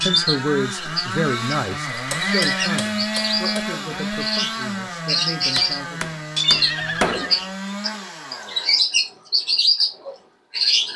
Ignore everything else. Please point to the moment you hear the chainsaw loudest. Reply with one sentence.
The loudest moment of the chainsaw is at 3 seconds.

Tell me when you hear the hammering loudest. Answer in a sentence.
The loudest moment of the hammering is at 7 seconds.